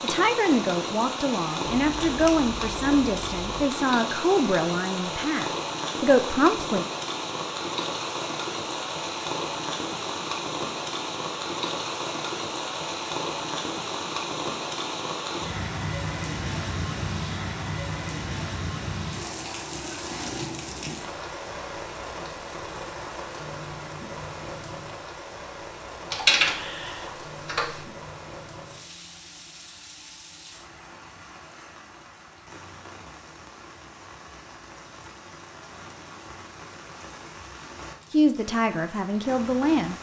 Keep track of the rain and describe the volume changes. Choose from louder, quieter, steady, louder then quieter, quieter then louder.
quieter.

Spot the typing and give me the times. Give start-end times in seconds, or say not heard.
1.6-3.6, 26.1-27.9.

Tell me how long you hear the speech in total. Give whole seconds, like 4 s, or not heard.
9 s.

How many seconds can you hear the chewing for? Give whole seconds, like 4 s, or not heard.
not heard.